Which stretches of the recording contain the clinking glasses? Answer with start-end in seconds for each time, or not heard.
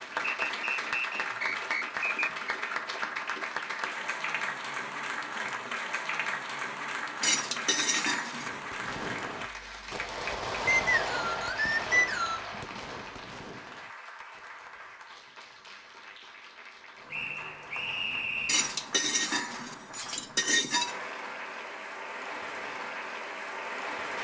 7.2-8.5, 18.4-21.0.